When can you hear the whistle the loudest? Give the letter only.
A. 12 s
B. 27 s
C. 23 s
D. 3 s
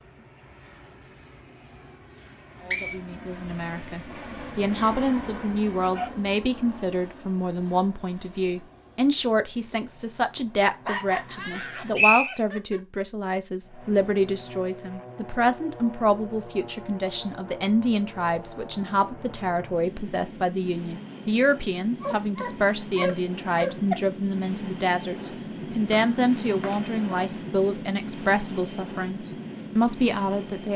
A.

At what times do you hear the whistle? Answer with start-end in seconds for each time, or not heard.
2.2-3.0, 11.9-12.3, 25.9-27.4.